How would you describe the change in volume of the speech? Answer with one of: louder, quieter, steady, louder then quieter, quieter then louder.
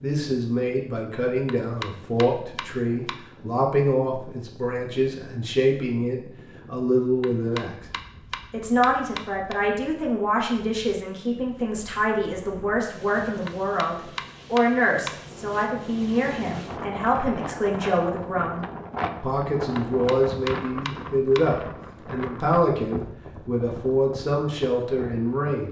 steady.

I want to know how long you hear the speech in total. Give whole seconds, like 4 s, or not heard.
25 s.